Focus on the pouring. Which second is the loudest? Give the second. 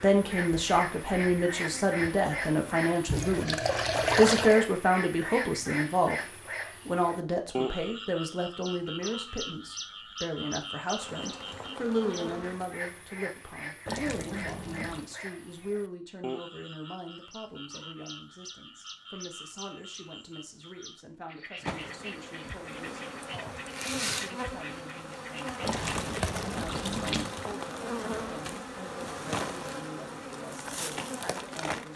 4 s.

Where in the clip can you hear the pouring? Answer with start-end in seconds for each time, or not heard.
3.0-4.6, 13.8-15.1, 25.6-27.4.